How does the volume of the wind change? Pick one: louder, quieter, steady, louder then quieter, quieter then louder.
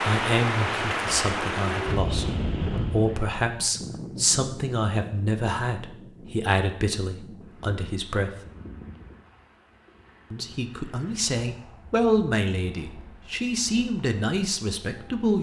quieter.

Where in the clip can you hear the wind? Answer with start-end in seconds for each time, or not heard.
0.0-15.3.